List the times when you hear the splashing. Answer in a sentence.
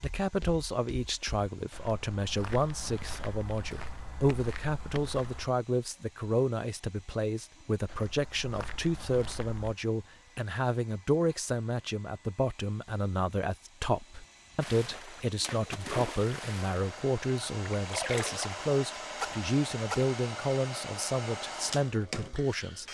The splashing can be heard from 14.6 to 20.1 s.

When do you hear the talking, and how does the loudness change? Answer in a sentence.
You can hear the talking from 0.0 to 22.8 s, at a steady volume.